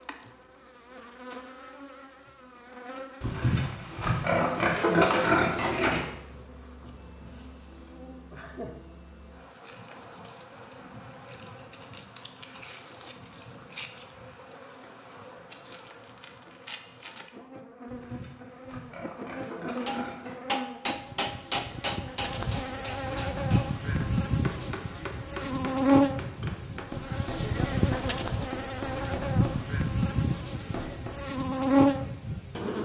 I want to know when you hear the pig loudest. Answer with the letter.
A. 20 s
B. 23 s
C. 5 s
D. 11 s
C.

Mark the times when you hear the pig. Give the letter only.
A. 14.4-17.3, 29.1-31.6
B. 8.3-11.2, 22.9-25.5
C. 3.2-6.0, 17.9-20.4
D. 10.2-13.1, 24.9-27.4
C.